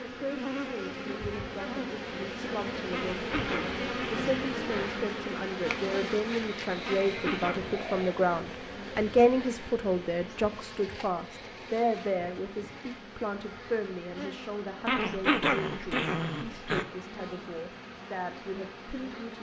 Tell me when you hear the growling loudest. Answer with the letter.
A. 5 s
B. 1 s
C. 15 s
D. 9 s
C.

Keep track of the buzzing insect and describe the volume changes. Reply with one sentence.
The loudness of the buzzing insect goes down.